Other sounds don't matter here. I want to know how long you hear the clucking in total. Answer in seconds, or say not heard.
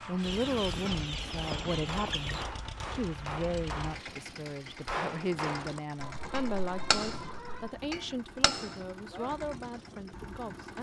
4 s.